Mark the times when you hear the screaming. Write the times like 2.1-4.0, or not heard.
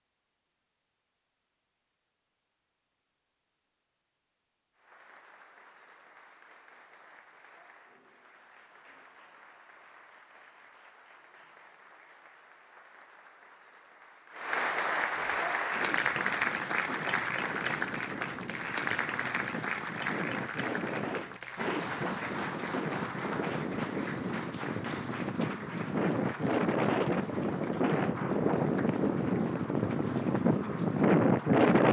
not heard.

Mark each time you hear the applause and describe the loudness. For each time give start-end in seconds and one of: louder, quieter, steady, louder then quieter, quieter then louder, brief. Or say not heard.
4.8-31.8 louder then quieter.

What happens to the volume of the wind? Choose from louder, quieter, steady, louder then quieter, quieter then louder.
louder.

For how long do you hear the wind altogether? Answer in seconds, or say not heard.
17 s.